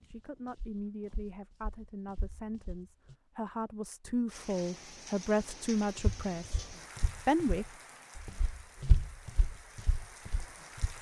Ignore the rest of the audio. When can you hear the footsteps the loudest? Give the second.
9 s.